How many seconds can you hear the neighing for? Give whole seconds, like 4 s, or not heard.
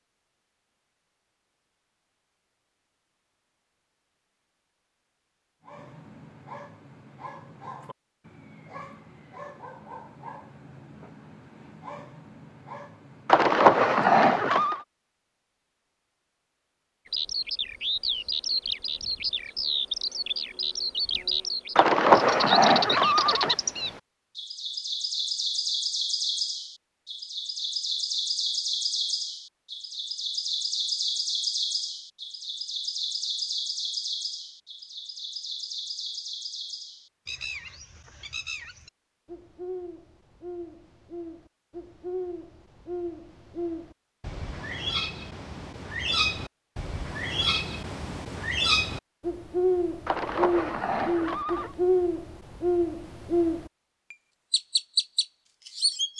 5 s.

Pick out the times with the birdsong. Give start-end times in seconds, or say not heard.
17.1-56.1.